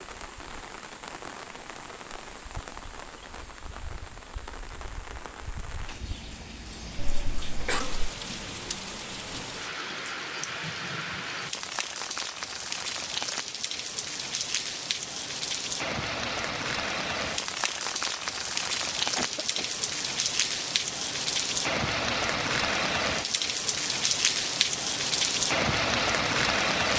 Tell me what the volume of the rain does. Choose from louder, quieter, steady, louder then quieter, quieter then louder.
louder.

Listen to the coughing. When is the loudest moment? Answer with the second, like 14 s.
8 s.